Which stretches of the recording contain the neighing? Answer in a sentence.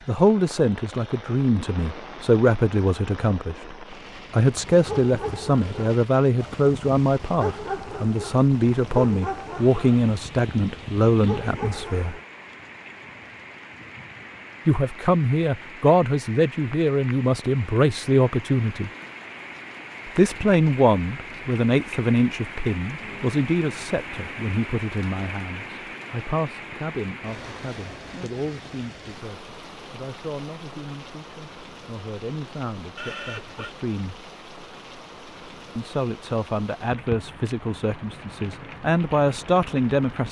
The neighing can be heard from 33.0 to 33.8 s.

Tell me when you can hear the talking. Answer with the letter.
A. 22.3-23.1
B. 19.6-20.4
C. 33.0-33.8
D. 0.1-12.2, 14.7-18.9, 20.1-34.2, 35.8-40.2
D.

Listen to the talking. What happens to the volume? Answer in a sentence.
The loudness of the talking goes down, then up.